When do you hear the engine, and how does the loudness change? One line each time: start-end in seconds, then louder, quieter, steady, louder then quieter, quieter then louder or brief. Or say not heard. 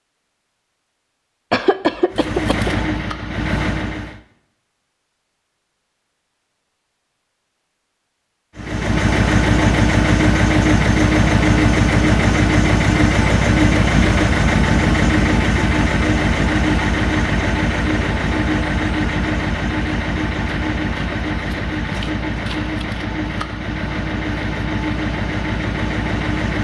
2.1-4.2 brief
8.6-26.6 quieter.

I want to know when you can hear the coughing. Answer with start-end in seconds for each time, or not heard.
1.5-2.8.